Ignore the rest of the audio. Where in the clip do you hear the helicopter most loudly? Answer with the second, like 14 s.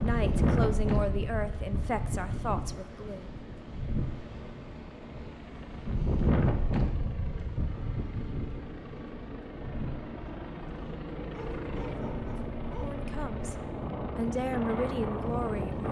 12 s.